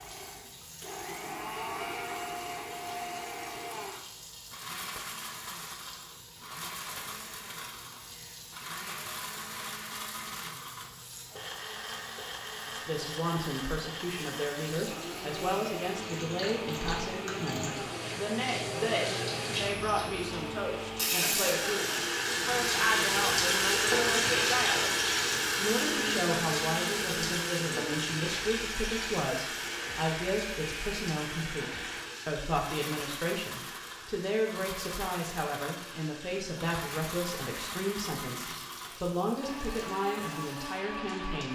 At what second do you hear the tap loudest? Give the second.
24 s.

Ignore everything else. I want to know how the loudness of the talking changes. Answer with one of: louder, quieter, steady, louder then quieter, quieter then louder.
steady.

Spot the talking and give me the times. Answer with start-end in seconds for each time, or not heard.
12.7-41.5.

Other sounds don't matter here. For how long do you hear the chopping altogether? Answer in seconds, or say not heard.
not heard.